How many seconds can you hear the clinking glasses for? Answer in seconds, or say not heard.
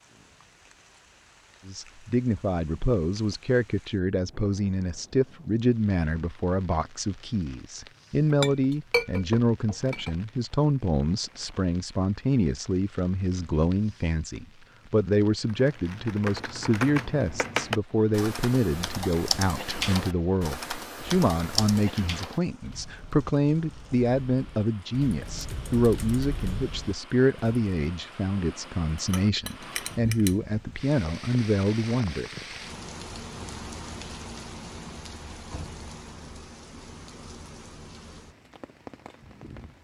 3 s.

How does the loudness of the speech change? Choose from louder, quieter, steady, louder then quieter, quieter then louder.
steady.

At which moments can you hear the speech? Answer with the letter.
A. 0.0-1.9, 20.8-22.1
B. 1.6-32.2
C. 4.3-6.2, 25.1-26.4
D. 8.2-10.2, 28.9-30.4
B.